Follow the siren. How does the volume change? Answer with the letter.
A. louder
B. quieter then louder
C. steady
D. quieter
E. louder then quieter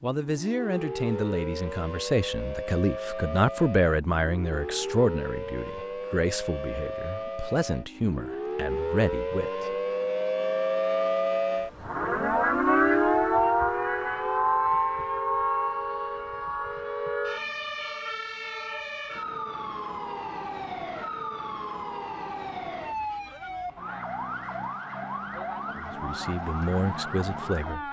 E.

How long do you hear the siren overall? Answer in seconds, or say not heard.
28 s.